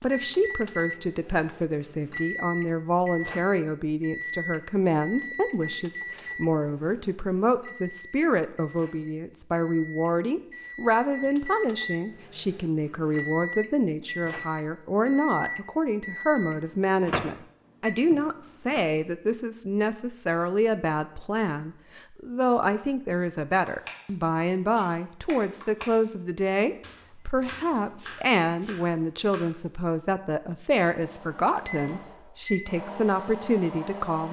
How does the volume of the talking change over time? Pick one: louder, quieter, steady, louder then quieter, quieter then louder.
steady.